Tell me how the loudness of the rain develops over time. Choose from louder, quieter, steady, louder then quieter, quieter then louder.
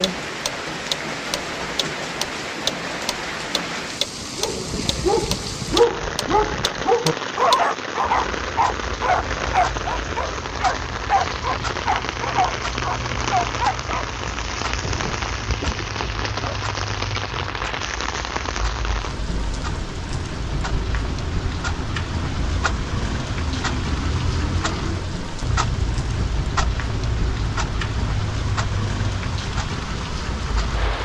steady.